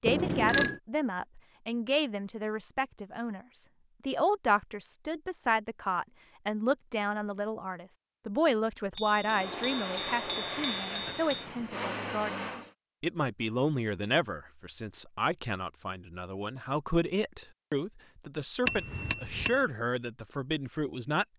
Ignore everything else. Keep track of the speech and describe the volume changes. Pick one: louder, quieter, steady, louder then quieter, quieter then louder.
steady.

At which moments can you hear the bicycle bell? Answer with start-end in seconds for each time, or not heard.
0.1-0.8, 8.9-11.4, 18.6-19.6.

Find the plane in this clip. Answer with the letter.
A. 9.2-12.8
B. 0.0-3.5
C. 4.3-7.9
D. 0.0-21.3
A.